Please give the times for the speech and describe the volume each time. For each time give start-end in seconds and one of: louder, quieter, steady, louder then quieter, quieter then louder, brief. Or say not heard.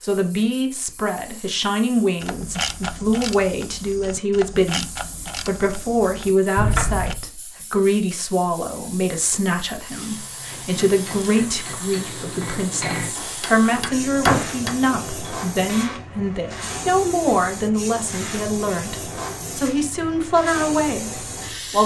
0.0-21.8 steady.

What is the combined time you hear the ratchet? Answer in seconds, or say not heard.
5 s.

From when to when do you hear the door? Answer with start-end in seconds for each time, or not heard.
6.5-7.2, 13.2-14.5.